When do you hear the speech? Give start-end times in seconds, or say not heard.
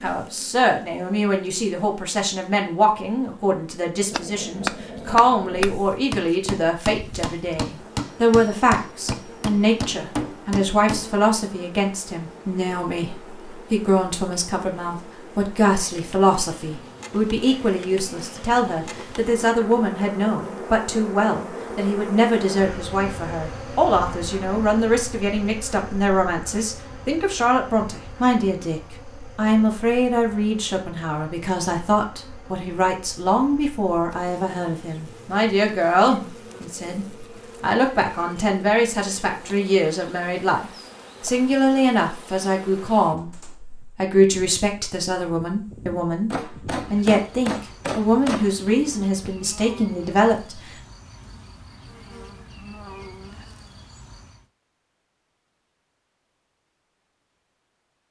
0.0-50.7.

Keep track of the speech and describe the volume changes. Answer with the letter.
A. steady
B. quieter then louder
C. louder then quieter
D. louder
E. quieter
A.